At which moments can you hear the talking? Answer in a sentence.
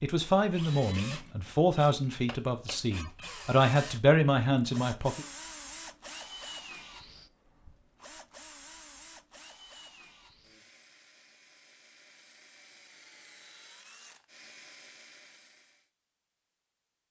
You can hear the talking from 0.0 to 5.2 s.